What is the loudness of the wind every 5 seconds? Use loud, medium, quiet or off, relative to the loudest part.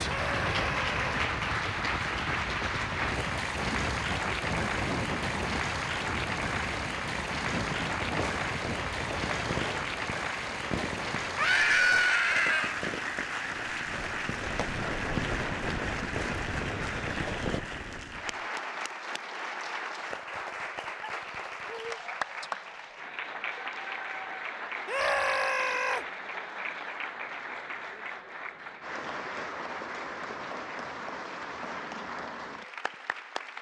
loud, loud, medium, loud, off, off, off.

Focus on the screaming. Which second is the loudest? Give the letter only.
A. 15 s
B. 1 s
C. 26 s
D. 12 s
D.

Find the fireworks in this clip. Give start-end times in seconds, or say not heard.
8.2-17.6.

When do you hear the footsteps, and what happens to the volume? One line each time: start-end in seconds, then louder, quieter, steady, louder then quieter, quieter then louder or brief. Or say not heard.
not heard.